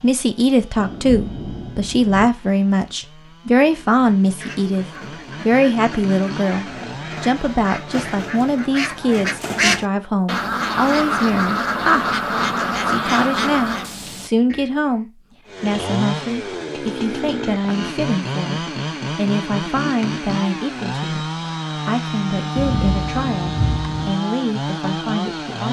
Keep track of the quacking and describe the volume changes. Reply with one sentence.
The loudness of the quacking goes up.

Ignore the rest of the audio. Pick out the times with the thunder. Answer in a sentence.
You can hear the thunder from 0.8 to 2.3 s and from 22.6 to 24.1 s.